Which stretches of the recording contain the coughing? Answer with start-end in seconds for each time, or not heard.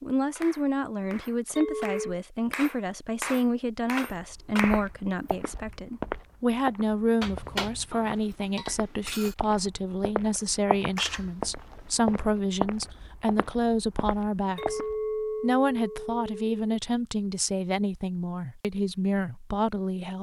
not heard.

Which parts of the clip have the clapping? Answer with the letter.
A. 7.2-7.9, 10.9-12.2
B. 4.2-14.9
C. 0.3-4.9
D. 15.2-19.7
C.